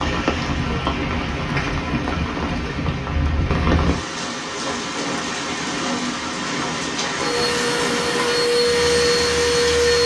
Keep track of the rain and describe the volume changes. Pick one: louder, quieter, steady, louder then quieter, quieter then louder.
steady.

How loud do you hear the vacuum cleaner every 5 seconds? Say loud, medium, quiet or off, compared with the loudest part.
off, loud.